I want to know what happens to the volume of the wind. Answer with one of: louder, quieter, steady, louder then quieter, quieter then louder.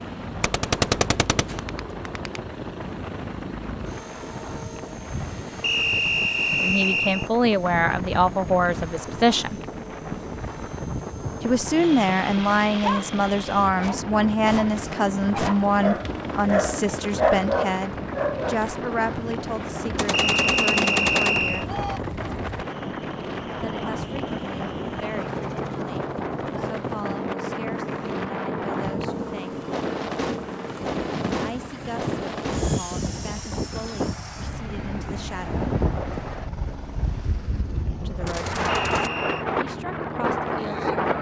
louder.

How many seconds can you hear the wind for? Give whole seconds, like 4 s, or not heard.
41 s.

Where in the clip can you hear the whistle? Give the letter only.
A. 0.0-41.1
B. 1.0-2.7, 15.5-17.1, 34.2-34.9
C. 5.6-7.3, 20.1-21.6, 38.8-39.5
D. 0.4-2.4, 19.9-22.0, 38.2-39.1
C.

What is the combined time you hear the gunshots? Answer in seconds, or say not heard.
5 s.